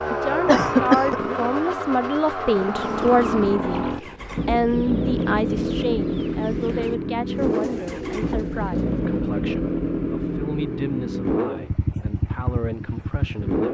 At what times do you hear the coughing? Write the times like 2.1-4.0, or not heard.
0.5-1.2.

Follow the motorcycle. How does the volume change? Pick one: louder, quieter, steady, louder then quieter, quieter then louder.
steady.